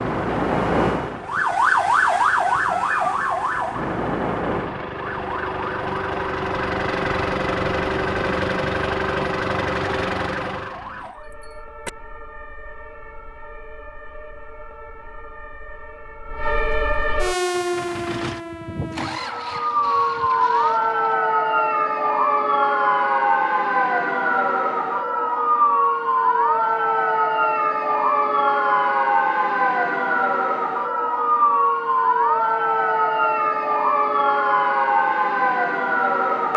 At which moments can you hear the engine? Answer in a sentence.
The engine can be heard from 0.0 to 11.9 s and from 17.3 to 21.1 s.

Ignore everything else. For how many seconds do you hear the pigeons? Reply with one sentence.
The pigeons can't be heard in this clip.